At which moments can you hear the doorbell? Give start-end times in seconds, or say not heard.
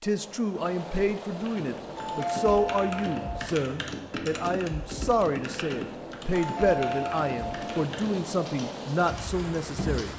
1.9-3.5, 6.3-7.7.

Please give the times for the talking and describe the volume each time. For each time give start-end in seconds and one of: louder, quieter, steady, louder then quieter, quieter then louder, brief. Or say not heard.
0.0-10.1 steady.